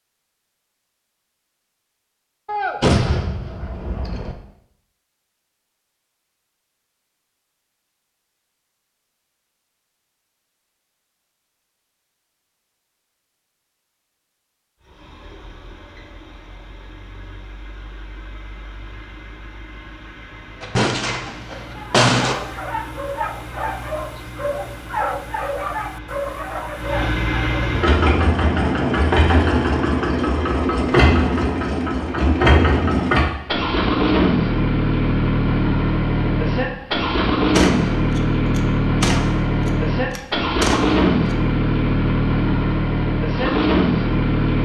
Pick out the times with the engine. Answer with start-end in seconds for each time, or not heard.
14.8-44.6.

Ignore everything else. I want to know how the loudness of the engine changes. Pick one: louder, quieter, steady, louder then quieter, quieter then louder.
louder.